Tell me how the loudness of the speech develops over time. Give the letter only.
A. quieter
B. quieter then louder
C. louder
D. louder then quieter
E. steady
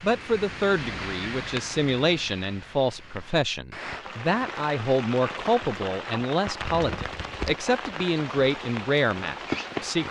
E.